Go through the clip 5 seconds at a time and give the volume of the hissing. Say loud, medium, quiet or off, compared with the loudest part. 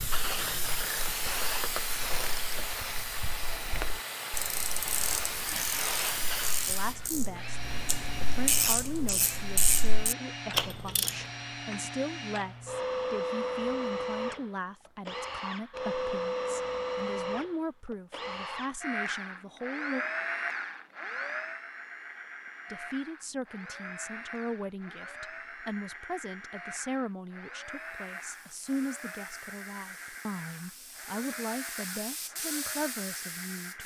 loud, loud, off, off, off, quiet, medium.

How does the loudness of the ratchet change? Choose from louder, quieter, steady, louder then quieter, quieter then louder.
louder.